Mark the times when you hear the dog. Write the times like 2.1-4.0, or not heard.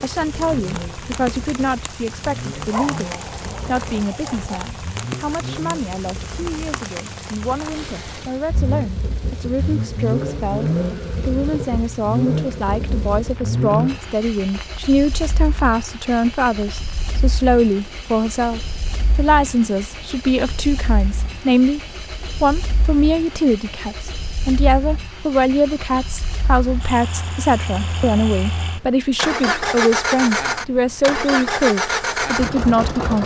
2.7-4.7.